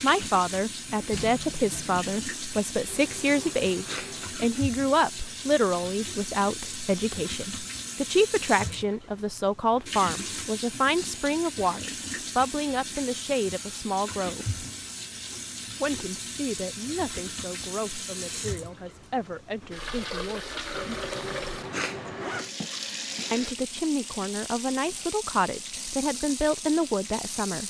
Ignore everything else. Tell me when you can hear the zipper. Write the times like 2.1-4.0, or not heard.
2.9-4.4, 20.7-22.5.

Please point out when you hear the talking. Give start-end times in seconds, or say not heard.
0.0-14.6, 15.8-20.8, 23.3-27.6.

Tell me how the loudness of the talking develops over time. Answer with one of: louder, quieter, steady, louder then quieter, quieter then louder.
quieter then louder.